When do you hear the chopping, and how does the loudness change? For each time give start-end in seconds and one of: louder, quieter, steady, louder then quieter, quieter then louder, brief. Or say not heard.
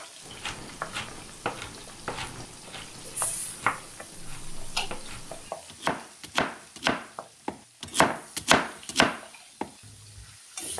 0.2-10.2 louder.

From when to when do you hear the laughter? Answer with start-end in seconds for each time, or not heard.
not heard.